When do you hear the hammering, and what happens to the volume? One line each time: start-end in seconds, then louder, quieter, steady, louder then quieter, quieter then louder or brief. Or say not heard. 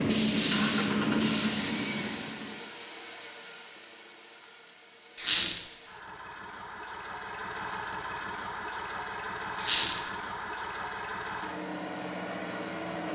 not heard.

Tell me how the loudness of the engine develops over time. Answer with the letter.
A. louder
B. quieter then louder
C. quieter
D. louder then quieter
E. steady
B.